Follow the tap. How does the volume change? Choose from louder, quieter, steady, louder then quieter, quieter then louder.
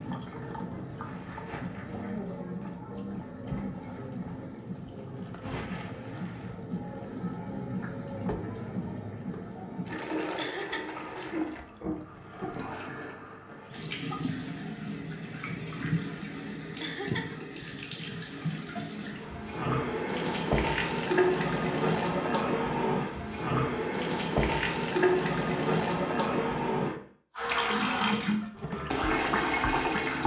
louder.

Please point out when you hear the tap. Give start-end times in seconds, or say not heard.
0.0-30.2.